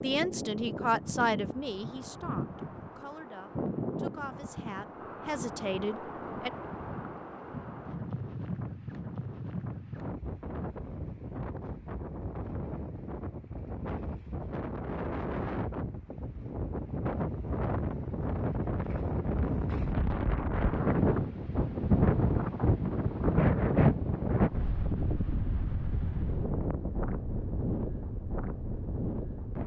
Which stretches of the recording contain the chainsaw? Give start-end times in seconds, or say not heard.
not heard.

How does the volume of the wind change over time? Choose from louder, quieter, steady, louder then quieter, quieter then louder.
louder.